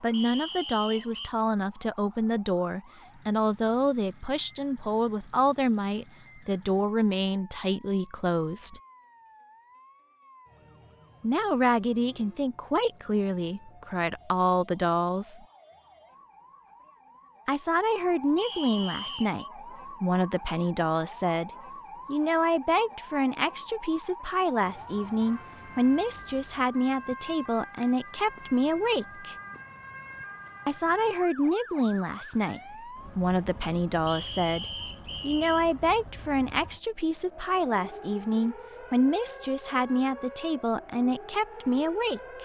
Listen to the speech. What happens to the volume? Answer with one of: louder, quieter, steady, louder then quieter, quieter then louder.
steady.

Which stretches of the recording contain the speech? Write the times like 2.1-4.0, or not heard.
0.0-8.8, 11.2-15.4, 17.4-29.4, 30.6-42.3.